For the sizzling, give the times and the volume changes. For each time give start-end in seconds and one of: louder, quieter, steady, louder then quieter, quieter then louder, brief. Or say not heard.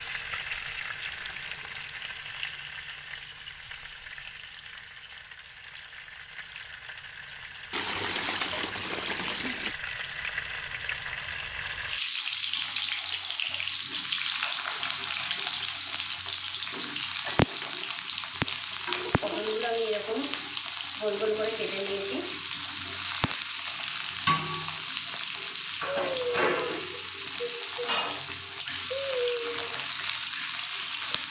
0.0-31.2 louder.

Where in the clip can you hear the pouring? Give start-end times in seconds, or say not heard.
7.7-9.8.